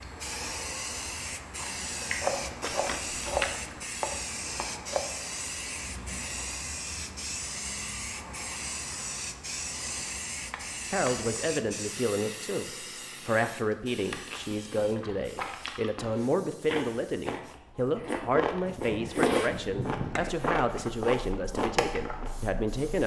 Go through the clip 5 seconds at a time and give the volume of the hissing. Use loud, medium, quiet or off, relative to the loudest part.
loud, loud, loud, quiet, quiet.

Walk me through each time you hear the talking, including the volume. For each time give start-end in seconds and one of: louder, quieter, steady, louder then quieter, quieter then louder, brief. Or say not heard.
10.9-23.0 steady.